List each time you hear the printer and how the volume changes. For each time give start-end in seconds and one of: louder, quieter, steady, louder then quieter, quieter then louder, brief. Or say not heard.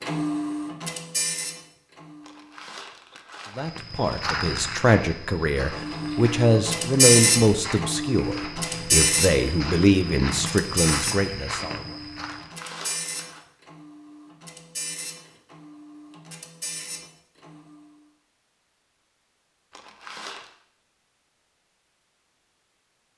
0.0-2.5 brief
5.7-17.9 quieter.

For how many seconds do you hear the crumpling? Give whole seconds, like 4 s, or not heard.
4 s.